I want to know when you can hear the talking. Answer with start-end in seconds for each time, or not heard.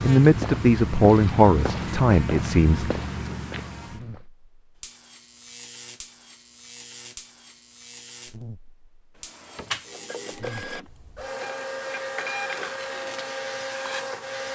0.0-2.9.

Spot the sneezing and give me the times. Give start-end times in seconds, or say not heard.
not heard.